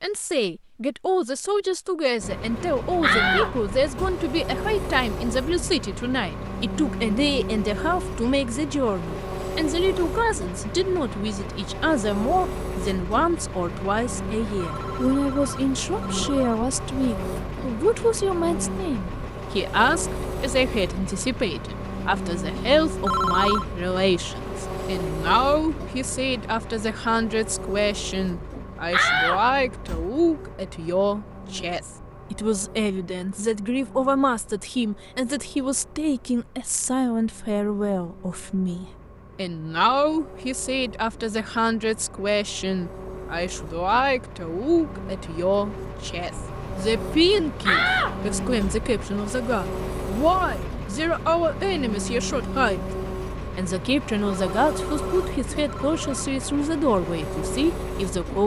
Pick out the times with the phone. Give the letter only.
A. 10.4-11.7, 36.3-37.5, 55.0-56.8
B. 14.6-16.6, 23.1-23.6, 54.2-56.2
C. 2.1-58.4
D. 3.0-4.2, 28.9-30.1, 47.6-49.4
B.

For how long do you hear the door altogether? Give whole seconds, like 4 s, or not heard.
4 s.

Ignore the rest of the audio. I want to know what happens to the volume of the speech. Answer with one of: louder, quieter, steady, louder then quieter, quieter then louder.
steady.